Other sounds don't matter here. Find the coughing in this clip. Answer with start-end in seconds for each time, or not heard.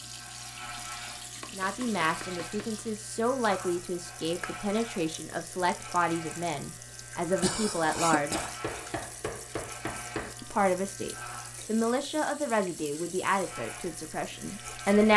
7.4-9.0.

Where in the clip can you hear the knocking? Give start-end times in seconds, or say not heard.
1.4-2.8, 8.3-10.3.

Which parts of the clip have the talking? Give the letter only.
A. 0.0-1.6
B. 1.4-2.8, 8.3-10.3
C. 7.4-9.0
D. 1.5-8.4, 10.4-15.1
D.